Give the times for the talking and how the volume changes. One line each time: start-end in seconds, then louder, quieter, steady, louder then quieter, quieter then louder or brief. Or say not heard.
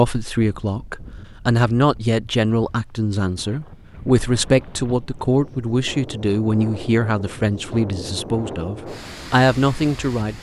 0.0-10.3 steady.